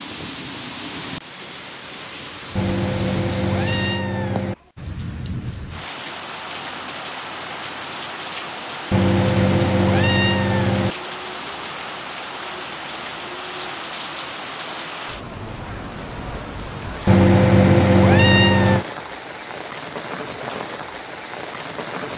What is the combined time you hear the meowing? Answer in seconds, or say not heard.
6 s.